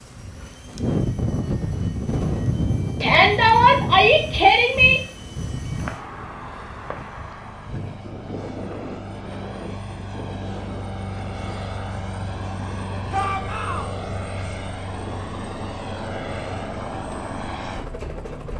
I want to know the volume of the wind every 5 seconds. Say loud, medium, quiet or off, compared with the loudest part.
loud, medium, quiet, quiet.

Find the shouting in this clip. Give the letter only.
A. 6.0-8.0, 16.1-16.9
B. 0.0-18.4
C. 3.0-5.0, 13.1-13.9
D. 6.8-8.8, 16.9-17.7
C.